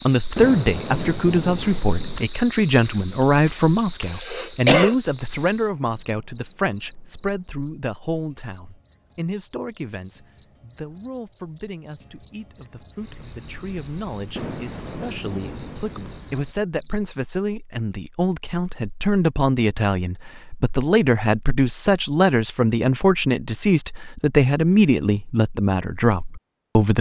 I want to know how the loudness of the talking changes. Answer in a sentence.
The volume of the talking goes down, then up.